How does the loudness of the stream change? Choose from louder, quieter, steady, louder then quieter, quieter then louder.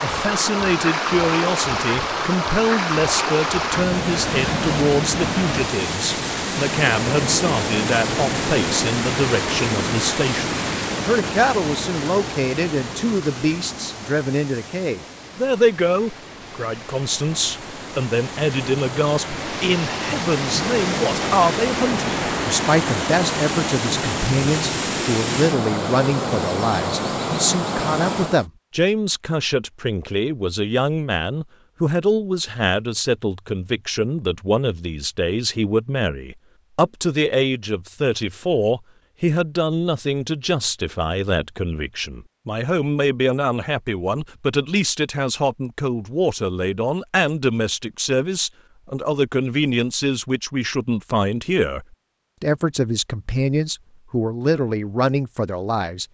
quieter then louder.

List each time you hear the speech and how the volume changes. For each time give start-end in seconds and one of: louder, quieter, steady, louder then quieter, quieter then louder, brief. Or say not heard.
0.0-56.0 steady.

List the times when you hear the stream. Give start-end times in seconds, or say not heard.
0.0-28.4.